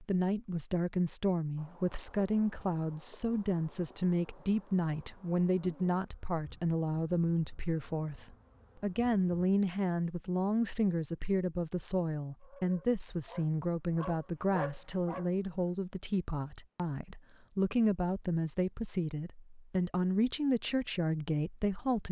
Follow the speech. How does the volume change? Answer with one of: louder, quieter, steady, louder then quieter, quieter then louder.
steady.